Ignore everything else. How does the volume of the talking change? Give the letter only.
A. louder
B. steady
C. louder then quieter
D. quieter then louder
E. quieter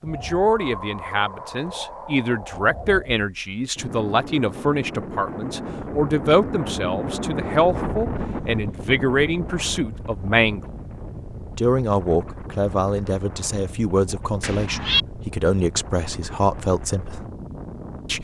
B.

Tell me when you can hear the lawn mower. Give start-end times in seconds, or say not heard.
not heard.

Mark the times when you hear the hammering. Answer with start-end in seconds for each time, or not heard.
not heard.